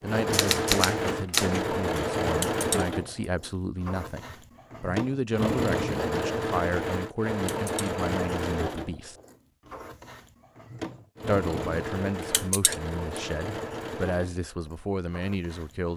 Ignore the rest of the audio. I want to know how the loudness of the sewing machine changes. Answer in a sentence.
The loudness of the sewing machine goes down.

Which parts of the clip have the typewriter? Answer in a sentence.
You can hear the typewriter from 0.2 to 2.0 s.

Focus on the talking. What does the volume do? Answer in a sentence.
The loudness of the talking stays about the same.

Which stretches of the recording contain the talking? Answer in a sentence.
You can hear the talking from 0.0 to 9.2 s and from 11.2 to 15.9 s.